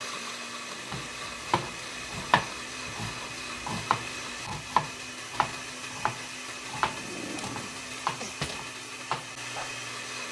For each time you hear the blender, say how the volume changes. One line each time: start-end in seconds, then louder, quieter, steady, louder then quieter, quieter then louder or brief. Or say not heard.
0.0-10.2 steady.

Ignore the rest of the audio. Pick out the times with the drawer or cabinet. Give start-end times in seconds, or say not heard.
0.6-1.1, 6.8-8.7.